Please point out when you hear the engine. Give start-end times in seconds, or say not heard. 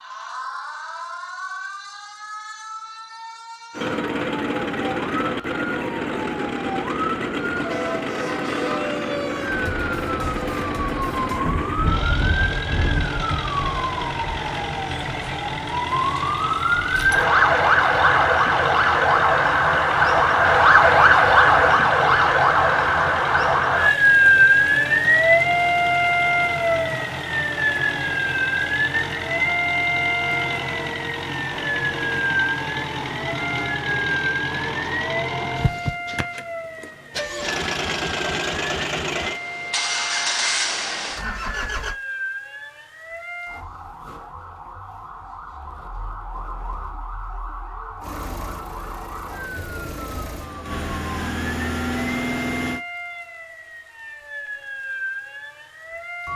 3.7-42.0, 48.0-52.8.